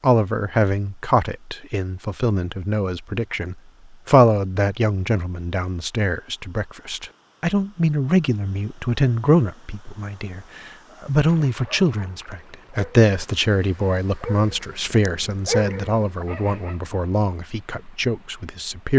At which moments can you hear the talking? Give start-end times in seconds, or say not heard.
0.0-18.9.